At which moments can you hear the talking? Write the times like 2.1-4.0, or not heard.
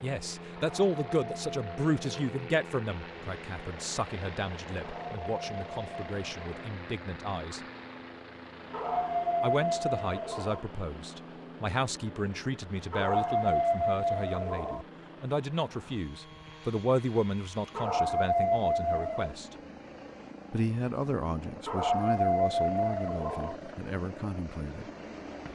0.0-7.6, 9.4-19.4, 20.5-24.9.